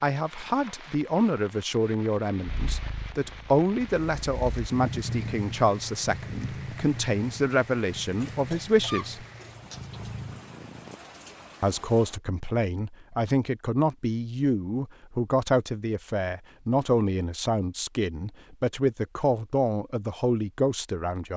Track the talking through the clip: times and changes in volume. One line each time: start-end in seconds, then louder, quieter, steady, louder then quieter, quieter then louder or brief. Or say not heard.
0.0-9.2 steady
11.6-21.3 steady.